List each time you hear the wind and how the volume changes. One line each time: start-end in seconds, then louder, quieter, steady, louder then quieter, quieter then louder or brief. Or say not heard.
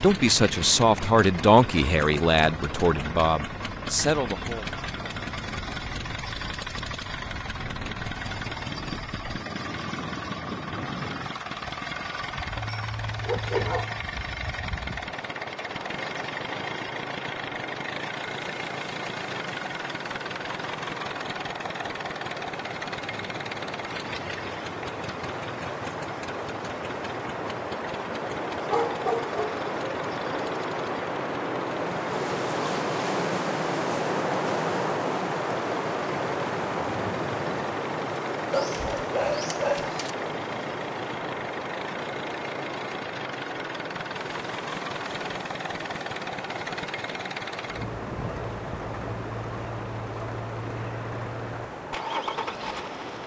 0.0-53.2 louder then quieter.